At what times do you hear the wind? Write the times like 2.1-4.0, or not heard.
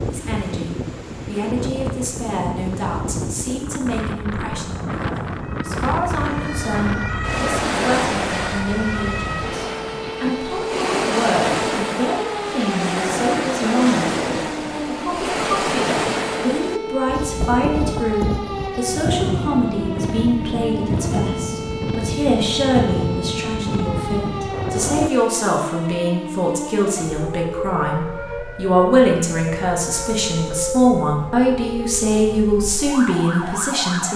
0.0-25.1.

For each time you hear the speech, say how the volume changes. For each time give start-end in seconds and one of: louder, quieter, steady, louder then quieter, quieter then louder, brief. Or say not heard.
0.0-34.1 louder.